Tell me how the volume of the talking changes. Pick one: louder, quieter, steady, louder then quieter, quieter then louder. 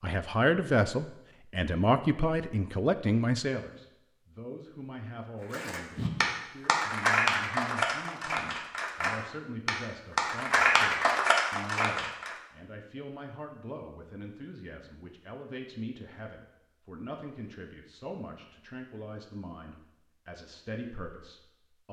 quieter.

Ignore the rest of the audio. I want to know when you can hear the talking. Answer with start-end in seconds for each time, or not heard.
0.0-21.8.